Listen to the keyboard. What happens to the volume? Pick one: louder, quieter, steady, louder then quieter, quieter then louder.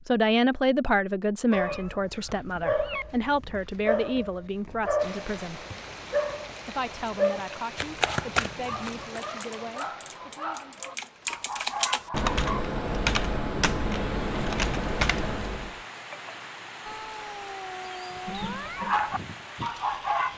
louder.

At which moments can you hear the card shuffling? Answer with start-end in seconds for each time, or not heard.
7.8-9.2.